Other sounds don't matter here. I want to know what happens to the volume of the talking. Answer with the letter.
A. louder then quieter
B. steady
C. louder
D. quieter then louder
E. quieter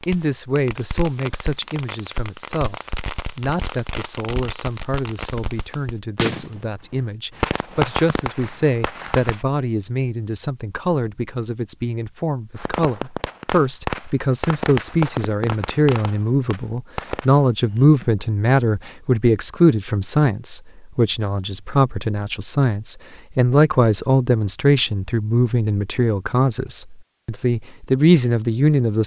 C.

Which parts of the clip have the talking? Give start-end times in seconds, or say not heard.
0.1-29.0.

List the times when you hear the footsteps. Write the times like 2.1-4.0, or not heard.
not heard.